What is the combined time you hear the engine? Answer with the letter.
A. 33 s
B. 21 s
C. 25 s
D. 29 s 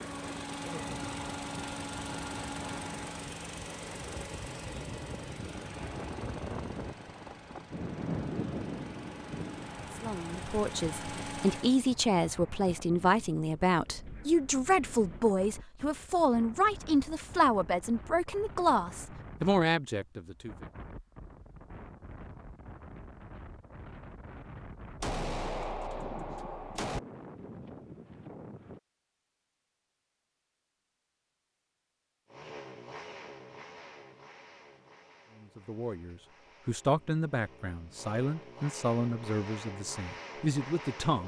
B.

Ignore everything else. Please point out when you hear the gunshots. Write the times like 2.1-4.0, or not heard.
25.0-27.0.